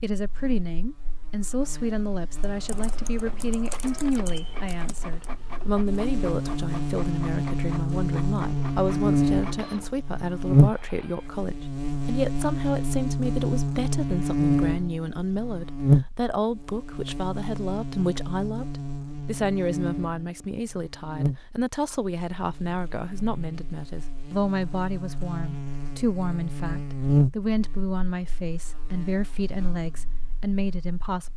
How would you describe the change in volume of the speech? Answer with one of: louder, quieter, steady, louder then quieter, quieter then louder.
steady.